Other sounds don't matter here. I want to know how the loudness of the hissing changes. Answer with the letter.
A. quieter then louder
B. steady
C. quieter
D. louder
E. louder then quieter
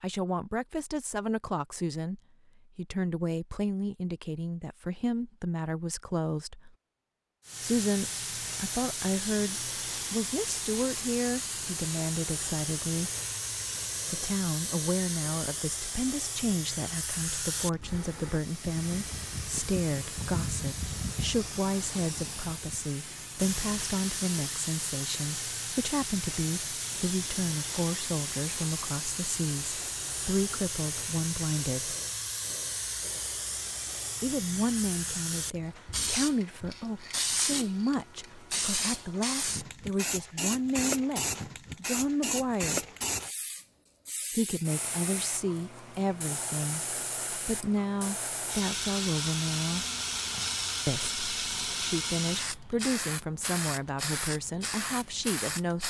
B.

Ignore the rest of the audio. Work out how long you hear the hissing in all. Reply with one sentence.
You can hear the hissing for 48 seconds altogether.